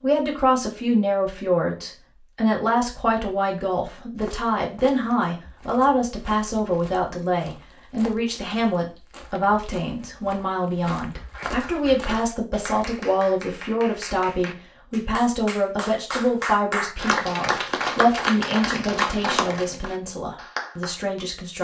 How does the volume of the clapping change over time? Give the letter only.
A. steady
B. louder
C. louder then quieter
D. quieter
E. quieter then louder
B.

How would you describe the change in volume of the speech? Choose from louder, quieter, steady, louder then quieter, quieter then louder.
steady.